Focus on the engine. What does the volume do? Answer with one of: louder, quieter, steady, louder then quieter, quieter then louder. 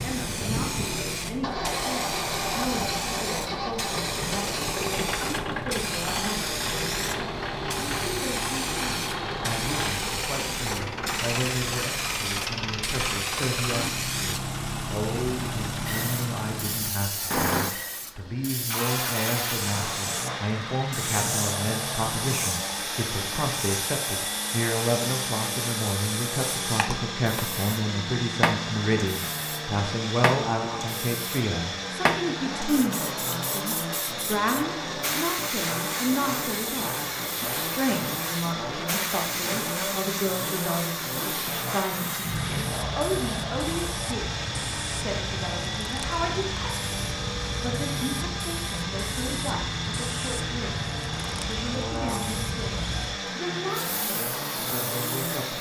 steady.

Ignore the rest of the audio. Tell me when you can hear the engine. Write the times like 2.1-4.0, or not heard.
0.0-55.5.